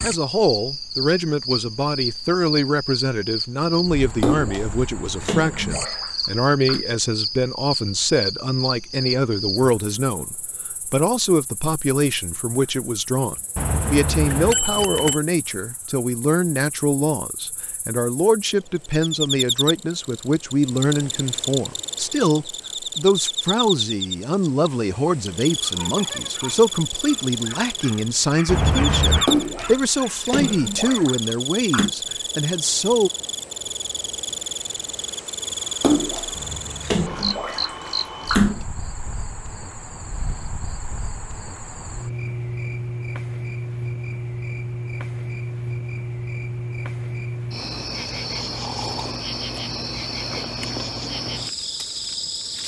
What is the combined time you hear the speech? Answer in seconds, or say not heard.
33 s.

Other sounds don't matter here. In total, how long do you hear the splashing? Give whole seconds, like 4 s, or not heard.
8 s.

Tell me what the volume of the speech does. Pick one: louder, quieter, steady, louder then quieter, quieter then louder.
steady.